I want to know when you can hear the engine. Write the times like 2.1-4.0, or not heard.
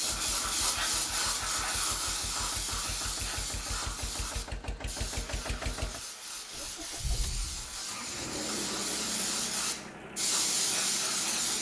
0.0-11.5.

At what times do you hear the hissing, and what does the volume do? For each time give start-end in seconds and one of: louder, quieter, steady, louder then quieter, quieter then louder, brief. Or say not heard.
0.0-11.5 quieter then louder.